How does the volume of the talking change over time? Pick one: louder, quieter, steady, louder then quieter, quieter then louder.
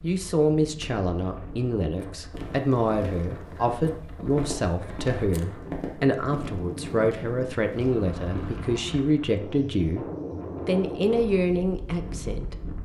steady.